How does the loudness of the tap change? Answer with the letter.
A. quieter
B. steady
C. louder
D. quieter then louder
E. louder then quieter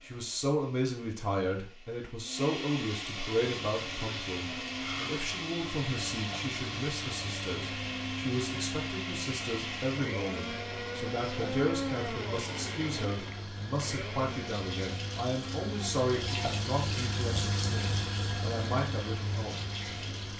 C.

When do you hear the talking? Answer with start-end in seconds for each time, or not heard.
0.0-19.6.